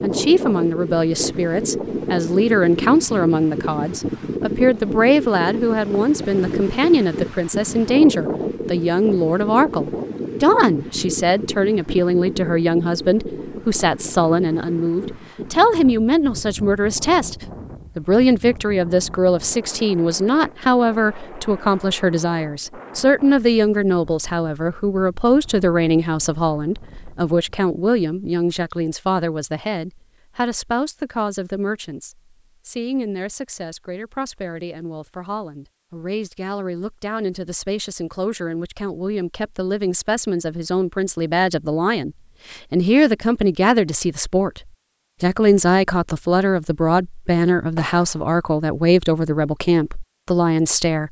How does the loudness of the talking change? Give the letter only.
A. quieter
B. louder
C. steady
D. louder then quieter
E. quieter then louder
E.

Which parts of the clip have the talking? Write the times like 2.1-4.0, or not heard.
0.0-44.6, 45.2-51.0.